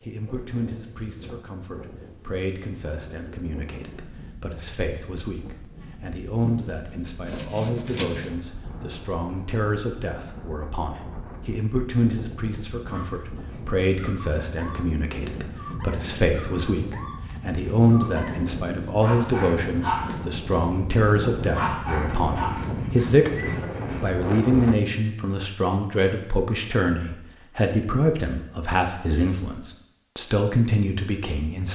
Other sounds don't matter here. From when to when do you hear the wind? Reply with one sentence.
The wind can be heard from 0.0 to 24.8 s.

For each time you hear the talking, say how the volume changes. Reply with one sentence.
You can hear the talking from 0.0 to 31.6 s, getting louder.